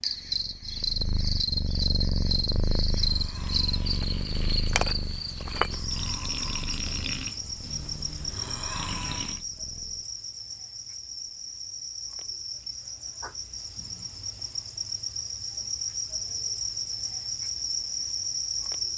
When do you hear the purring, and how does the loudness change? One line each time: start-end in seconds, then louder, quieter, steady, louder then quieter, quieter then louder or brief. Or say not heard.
0.0-10.1 quieter.